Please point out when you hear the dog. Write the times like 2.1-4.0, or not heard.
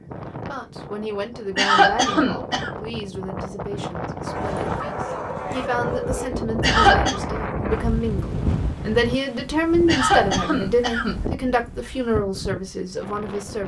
4.2-6.3.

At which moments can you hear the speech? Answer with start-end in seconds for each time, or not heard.
0.0-13.6.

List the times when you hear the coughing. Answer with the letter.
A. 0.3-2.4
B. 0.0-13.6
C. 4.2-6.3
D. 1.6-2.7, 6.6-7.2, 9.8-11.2
D.